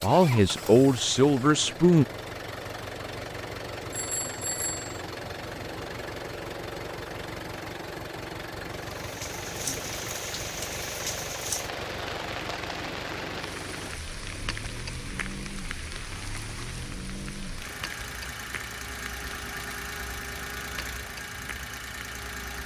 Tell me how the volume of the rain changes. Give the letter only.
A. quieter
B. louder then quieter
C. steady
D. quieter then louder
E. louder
A.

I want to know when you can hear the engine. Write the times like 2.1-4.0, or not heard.
0.0-22.6.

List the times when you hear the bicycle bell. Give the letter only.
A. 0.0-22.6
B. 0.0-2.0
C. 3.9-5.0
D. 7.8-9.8
C.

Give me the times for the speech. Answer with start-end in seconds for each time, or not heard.
0.0-2.0.